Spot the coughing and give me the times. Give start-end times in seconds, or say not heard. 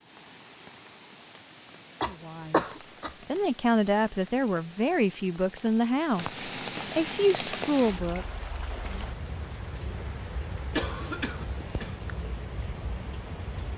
2.0-3.1, 10.7-12.0.